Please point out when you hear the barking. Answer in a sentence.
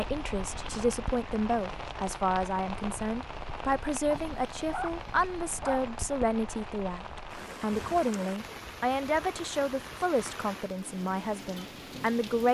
You can hear the barking from 4.1 to 6.0 s.